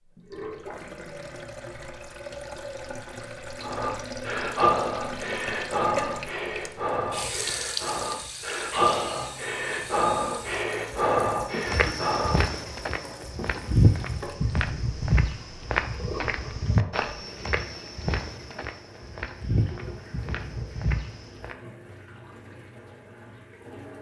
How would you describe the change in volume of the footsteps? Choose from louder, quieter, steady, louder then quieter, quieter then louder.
louder then quieter.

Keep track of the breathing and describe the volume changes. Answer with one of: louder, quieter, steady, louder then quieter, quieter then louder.
steady.